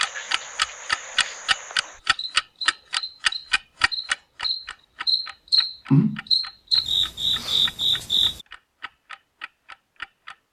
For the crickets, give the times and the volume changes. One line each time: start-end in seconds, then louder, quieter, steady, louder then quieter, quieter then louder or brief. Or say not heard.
0.0-8.4 louder.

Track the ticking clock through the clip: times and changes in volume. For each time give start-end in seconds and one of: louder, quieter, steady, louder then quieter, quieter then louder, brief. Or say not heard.
0.0-10.3 quieter.